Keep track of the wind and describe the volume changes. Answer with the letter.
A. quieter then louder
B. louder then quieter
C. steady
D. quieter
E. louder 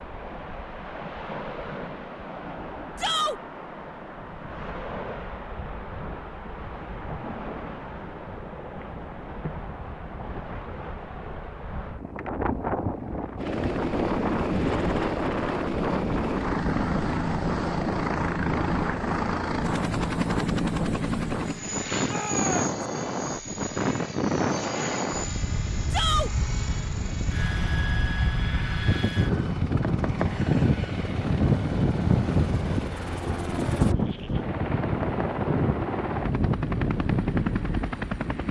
E.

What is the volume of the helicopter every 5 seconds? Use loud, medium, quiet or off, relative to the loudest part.
off, off, loud, loud, loud, medium, medium, loud.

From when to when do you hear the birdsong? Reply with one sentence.
You can't hear the birdsong here.